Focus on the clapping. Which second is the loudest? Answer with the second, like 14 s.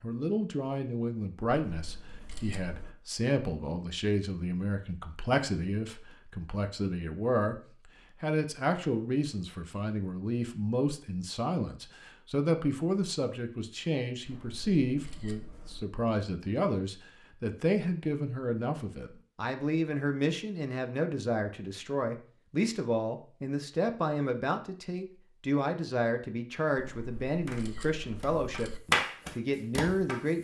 29 s.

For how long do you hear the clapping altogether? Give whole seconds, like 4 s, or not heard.
3 s.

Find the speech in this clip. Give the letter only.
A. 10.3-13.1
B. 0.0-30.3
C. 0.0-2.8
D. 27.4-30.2
B.